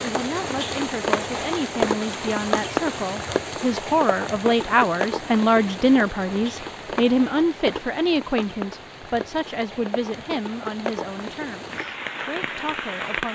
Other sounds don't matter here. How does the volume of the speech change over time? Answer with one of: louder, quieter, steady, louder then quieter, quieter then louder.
louder then quieter.